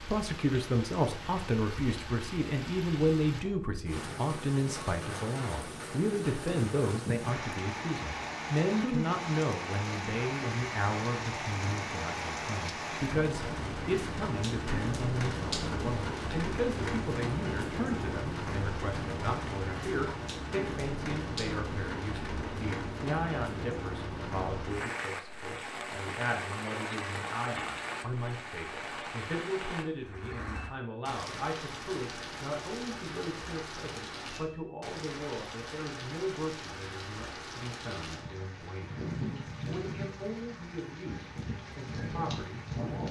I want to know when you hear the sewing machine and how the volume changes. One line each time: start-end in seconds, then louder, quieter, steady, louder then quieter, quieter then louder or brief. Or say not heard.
not heard.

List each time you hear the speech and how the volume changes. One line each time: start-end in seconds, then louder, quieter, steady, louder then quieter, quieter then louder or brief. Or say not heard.
0.0-43.0 quieter.